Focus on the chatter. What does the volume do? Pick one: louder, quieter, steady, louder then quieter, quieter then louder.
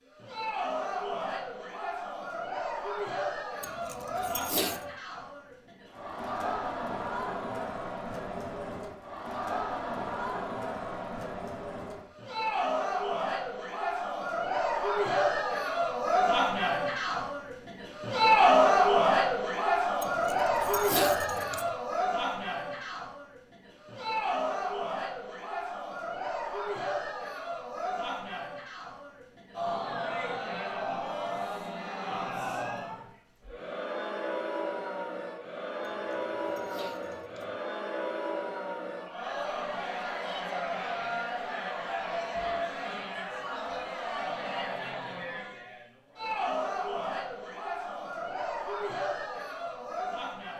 louder then quieter.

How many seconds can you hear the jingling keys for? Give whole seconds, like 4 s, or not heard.
5 s.